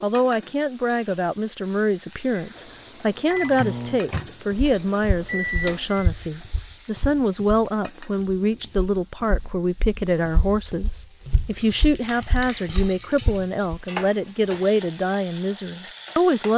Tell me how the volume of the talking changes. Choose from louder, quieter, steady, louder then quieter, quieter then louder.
steady.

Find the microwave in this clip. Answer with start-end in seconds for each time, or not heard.
2.4-6.0.